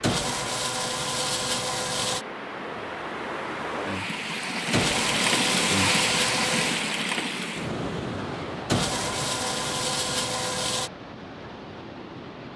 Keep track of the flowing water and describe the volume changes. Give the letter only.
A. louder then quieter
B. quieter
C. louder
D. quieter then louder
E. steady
A.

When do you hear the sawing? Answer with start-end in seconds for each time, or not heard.
0.0-2.2, 4.7-6.8, 8.7-10.9.